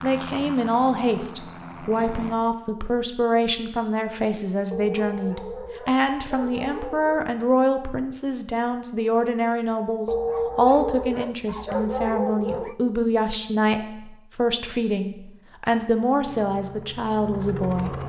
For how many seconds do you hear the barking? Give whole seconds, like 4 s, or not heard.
5 s.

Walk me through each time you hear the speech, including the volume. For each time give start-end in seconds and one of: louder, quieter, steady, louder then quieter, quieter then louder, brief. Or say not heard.
0.0-17.9 steady.